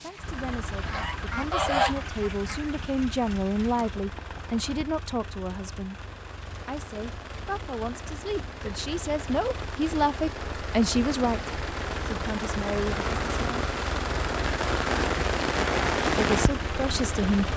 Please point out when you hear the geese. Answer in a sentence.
The geese can be heard from 0.8 to 2.7 s.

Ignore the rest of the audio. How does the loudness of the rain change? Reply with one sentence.
The volume of the rain goes up.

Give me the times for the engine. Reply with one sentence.
The engine can be heard from 0.0 to 17.5 s.